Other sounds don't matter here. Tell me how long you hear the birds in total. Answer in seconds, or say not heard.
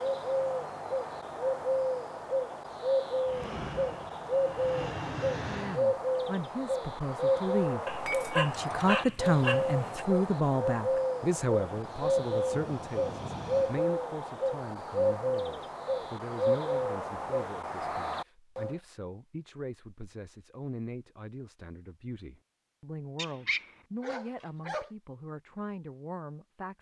19 s.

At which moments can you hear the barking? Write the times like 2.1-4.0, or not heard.
7.8-10.1, 23.1-24.9.